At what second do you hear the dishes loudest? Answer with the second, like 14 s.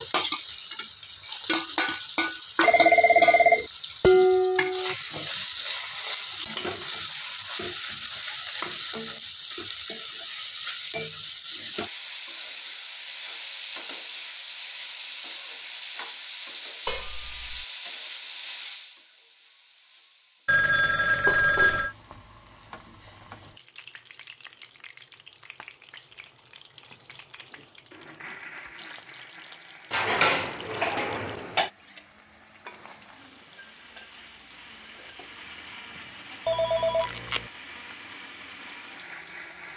4 s.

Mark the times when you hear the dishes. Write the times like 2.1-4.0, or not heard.
4.0-5.0, 16.9-17.6, 21.2-21.9, 29.9-31.7.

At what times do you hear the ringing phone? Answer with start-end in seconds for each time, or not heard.
2.6-3.6, 20.4-21.9, 36.5-37.5.